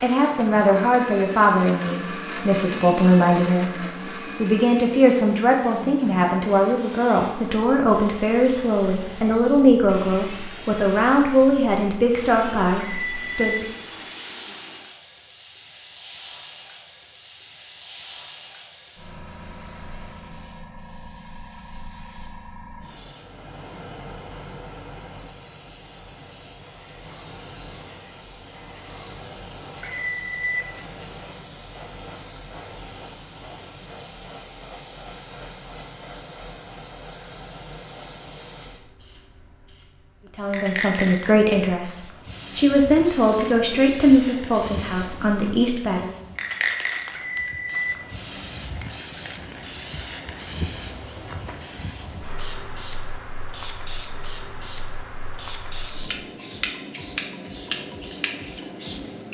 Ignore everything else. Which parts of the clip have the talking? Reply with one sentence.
You can hear the talking from 0.0 to 13.8 s and from 40.4 to 46.1 s.